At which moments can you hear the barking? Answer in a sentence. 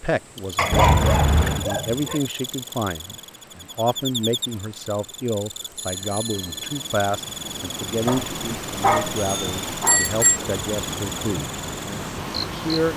The barking can be heard from 0.6 to 2.2 s and from 8.1 to 10.0 s.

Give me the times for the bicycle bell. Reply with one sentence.
You can hear the bicycle bell from 0.7 to 1.6 s, from 5.8 to 6.8 s and from 9.2 to 10.4 s.